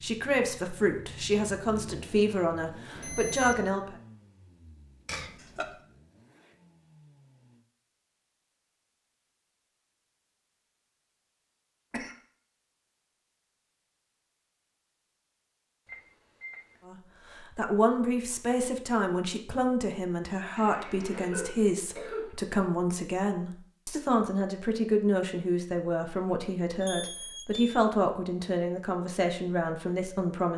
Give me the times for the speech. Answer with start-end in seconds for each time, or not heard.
0.0-4.0, 16.9-30.5.